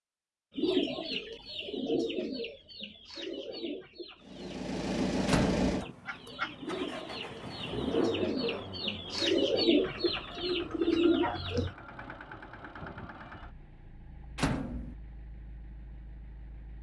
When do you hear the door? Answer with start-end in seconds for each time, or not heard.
5.2-5.7, 14.3-14.9.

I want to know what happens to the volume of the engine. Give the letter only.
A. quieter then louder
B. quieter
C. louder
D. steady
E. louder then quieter
B.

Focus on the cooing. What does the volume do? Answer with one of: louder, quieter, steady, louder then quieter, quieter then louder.
quieter then louder.